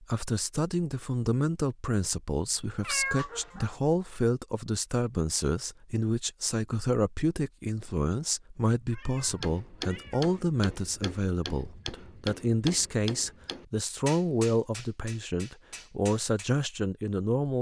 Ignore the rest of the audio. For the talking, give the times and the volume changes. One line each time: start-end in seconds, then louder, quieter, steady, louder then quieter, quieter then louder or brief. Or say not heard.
0.0-17.5 steady.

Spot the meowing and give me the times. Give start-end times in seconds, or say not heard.
2.8-3.8, 8.9-10.3.